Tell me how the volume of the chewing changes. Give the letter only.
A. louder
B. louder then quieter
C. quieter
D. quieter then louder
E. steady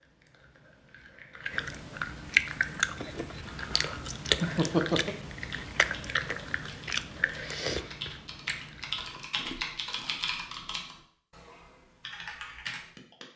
B.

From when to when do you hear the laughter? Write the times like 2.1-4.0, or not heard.
4.4-5.2.